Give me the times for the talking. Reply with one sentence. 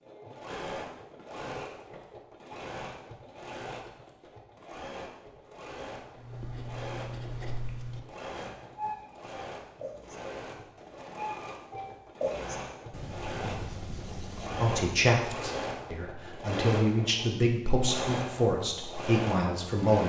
You can hear the talking from 14.6 to 20.0 s.